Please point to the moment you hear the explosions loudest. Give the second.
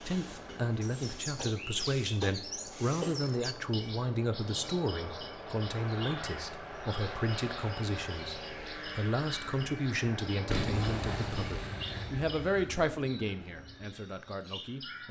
11 s.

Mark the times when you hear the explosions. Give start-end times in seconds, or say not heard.
10.4-12.7.